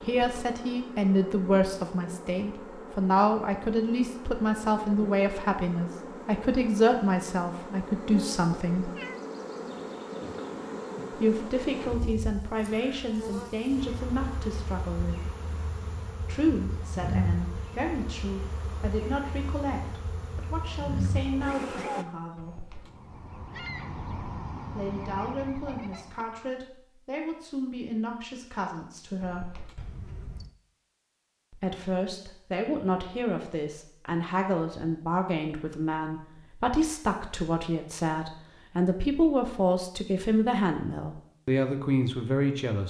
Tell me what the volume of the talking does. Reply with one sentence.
The loudness of the talking goes down, then up.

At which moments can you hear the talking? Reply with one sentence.
You can hear the talking from 0.1 to 8.9 s, from 11.1 to 15.3 s, from 16.2 to 22.6 s, from 24.8 to 29.6 s and from 31.5 to 42.8 s.